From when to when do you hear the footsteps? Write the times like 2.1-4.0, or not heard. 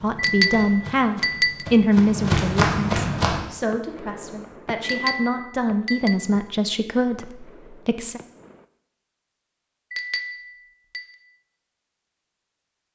0.0-3.4.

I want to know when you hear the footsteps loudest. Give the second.
2 s.